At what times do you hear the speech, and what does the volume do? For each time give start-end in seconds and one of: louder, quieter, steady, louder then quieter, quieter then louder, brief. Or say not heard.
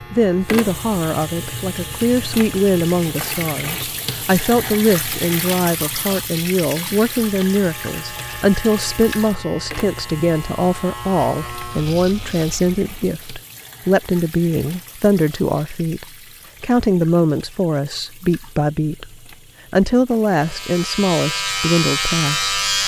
0.1-22.6 steady.